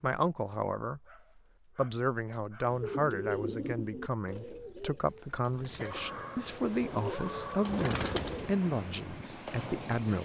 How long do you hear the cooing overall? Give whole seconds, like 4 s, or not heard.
6 s.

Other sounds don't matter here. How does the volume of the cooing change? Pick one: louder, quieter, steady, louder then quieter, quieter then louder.
quieter then louder.